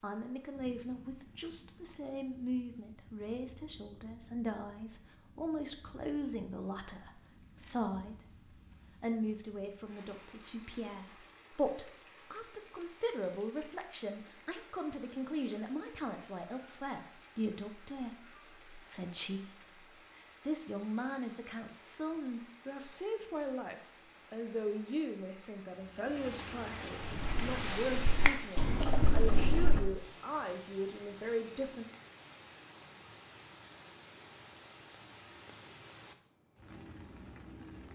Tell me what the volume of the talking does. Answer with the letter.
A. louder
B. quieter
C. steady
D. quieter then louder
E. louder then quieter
C.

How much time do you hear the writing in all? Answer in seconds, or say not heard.
3 s.